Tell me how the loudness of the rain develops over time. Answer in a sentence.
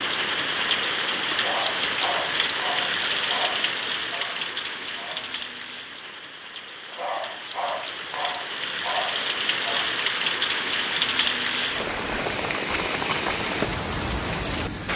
The loudness of the rain goes down, then up.